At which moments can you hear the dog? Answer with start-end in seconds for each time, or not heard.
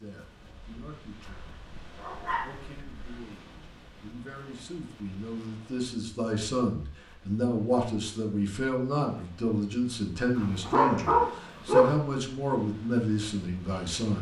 1.2-3.2, 10.3-12.0.